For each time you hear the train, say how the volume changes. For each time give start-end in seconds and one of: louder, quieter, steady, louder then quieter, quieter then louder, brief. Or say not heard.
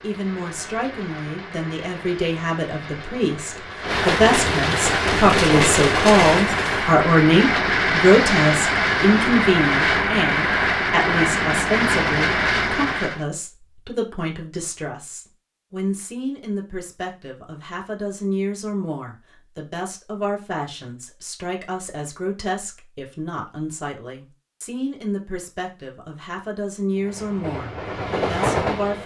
0.0-13.2 louder
26.9-29.0 brief.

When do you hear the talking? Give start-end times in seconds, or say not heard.
0.0-29.0.